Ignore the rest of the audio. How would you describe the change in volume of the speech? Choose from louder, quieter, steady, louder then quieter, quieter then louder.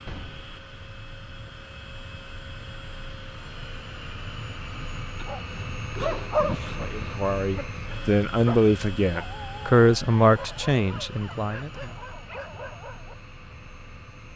louder then quieter.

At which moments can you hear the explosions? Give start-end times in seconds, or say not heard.
0.1-0.7.